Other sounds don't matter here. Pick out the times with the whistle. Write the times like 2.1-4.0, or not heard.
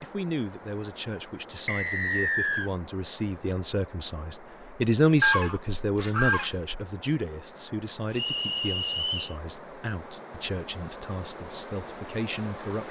1.6-2.7, 8.1-9.3.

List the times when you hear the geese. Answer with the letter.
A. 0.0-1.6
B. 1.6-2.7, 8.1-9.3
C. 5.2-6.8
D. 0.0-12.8
C.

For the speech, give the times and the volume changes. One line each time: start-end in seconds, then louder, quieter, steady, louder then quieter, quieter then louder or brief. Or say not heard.
0.0-12.8 louder then quieter.